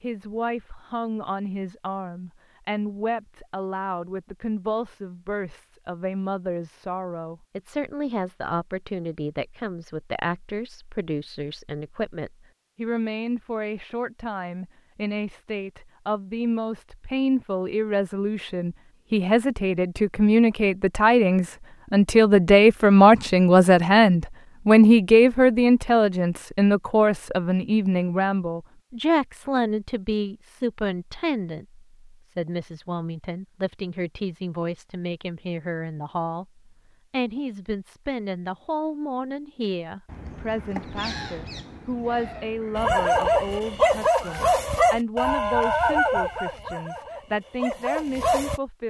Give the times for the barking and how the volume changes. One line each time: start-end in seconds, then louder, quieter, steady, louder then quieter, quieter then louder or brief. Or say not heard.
42.8-48.6 quieter.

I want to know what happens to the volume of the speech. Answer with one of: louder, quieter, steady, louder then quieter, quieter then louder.
louder then quieter.